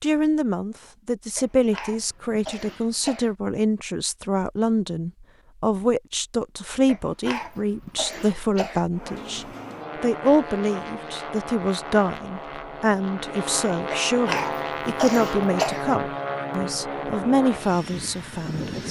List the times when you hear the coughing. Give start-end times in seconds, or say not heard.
1.4-3.4, 6.8-8.8, 13.9-15.9.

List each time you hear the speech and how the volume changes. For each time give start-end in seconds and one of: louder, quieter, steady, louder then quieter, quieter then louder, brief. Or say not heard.
0.0-18.8 steady.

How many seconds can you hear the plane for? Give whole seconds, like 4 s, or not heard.
10 s.